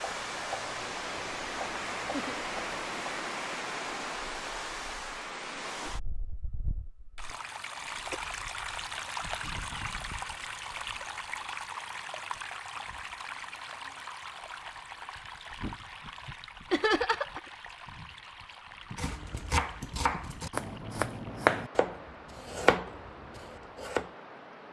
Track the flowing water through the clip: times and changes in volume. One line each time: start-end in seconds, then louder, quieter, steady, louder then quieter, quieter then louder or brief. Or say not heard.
0.0-24.6 quieter.